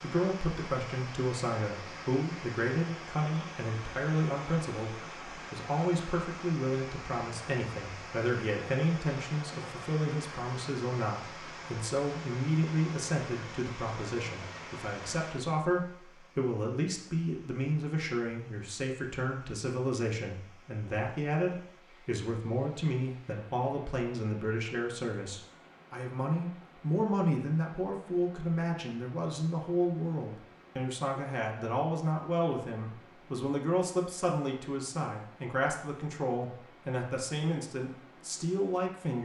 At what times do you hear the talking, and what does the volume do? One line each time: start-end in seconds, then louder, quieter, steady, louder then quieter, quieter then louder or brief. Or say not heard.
0.0-39.2 steady.